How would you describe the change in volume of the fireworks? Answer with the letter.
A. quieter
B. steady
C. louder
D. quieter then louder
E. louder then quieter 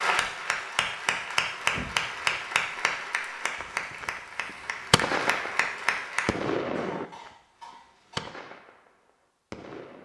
E.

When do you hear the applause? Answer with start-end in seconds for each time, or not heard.
0.0-6.3.